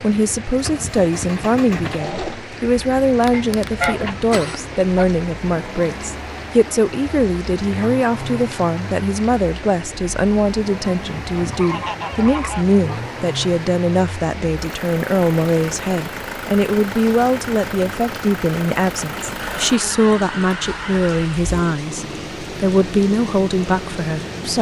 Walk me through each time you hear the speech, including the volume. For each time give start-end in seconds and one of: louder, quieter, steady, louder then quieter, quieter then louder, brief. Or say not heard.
0.0-24.5 steady.